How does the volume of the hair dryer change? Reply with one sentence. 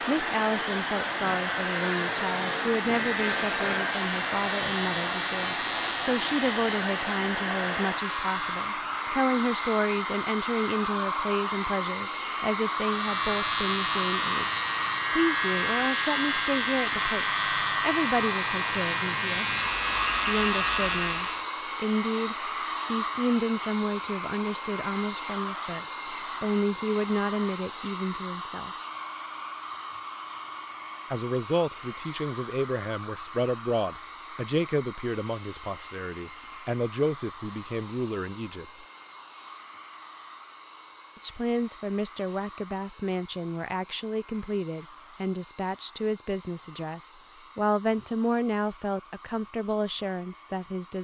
The volume of the hair dryer goes down.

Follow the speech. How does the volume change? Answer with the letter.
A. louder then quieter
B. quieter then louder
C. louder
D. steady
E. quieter
D.